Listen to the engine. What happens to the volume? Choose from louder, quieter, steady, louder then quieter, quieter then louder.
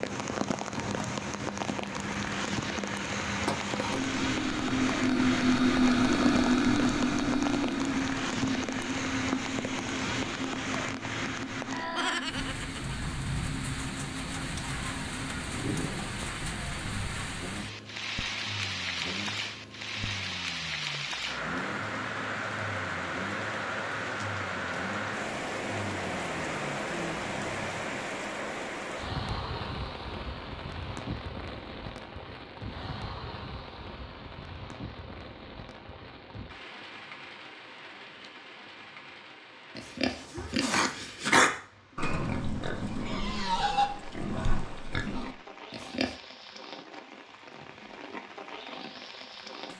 quieter.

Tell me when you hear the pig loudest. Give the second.
41 s.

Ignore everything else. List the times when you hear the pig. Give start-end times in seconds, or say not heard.
39.8-46.1.